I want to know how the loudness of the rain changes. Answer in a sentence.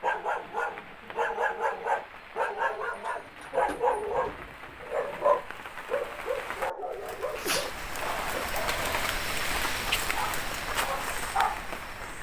The volume of the rain goes up.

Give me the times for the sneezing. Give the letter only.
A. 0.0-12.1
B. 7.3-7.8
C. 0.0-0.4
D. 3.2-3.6
B.